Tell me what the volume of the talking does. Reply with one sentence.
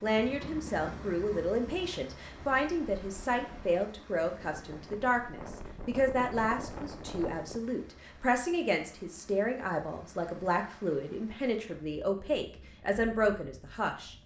The volume of the talking stays about the same.